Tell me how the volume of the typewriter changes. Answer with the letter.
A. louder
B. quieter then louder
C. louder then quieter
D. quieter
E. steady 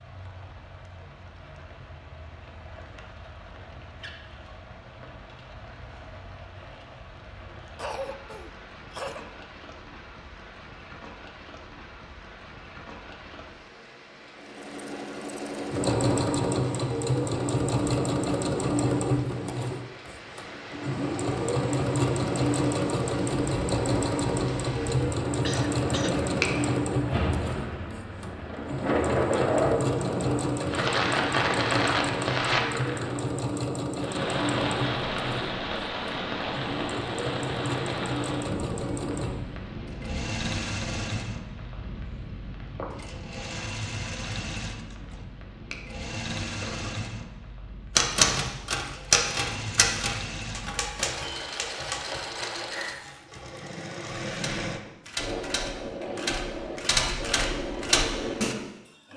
B.